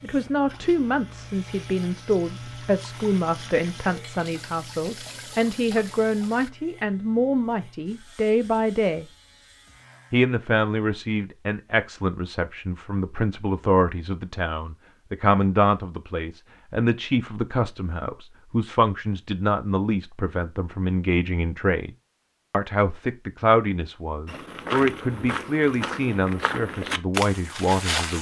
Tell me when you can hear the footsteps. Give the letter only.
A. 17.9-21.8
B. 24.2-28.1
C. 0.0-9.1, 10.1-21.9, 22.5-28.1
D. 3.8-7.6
B.